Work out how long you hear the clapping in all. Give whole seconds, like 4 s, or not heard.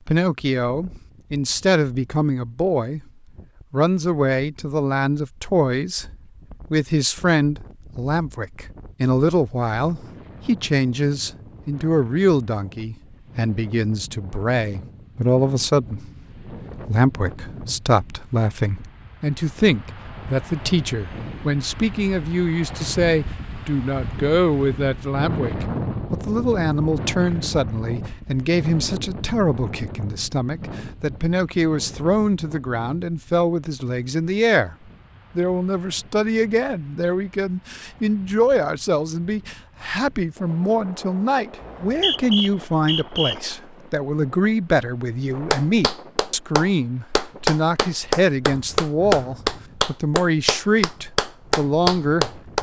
7 s.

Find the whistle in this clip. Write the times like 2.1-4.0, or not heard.
41.6-43.4.